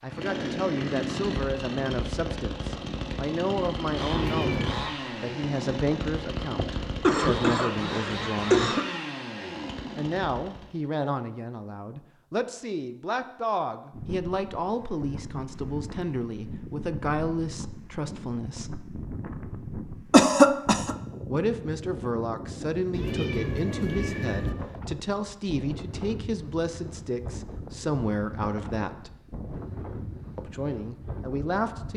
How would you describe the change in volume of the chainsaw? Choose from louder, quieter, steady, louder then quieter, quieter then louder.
steady.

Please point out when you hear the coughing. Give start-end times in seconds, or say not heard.
6.5-8.8, 20.1-20.9.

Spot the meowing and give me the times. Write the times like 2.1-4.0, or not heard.
4.1-4.8, 22.9-24.6.